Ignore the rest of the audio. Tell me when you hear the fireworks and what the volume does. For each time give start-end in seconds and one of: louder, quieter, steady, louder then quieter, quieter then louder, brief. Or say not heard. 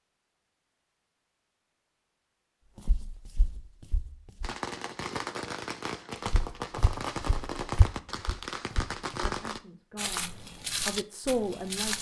4.4-9.6 steady.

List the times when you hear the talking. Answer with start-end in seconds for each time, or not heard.
9.2-11.9.